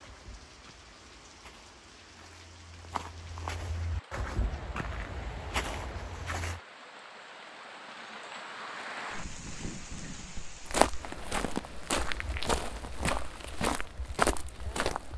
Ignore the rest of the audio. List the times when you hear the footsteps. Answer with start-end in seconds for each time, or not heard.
0.0-6.6, 10.6-15.1.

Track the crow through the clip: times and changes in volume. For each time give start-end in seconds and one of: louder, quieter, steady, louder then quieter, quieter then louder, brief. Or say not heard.
not heard.